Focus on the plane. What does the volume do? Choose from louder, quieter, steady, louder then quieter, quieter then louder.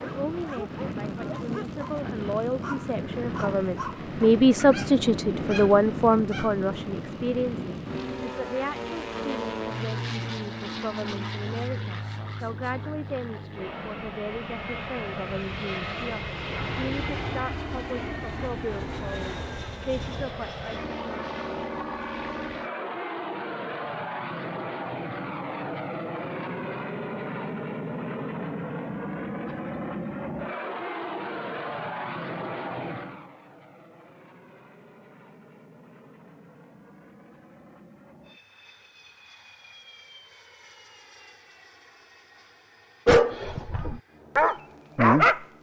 quieter.